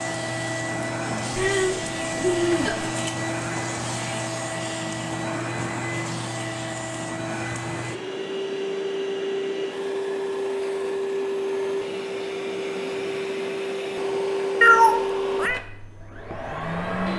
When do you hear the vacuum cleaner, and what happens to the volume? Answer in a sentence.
You can hear the vacuum cleaner from 0.0 to 17.1 s, at a steady volume.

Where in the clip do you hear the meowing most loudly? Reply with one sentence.
The loudest moment of the meowing is at 15 seconds.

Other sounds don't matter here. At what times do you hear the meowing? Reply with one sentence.
The meowing can be heard from 1.4 to 3.0 s and from 14.6 to 15.6 s.